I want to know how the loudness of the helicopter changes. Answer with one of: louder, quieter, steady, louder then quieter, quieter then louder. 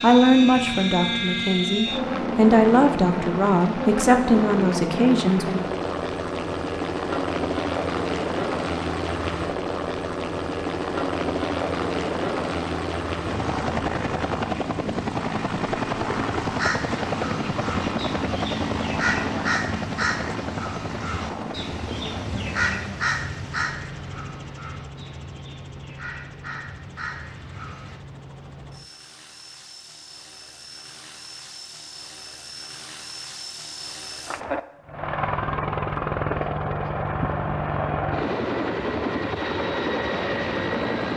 quieter then louder.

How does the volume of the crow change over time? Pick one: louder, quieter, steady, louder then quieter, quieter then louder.
louder then quieter.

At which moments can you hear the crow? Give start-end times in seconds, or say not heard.
16.3-28.0.